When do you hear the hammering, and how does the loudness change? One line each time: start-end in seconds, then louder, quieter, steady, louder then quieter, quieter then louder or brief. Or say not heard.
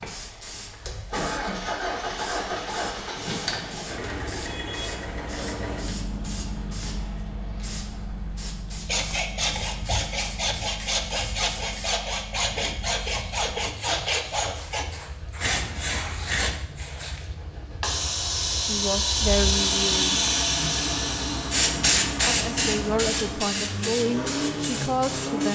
not heard.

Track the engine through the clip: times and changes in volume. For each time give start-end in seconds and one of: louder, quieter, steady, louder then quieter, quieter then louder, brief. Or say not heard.
0.0-25.5 quieter then louder.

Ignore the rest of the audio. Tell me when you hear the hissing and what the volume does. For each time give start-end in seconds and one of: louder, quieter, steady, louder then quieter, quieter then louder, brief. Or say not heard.
0.0-25.5 louder.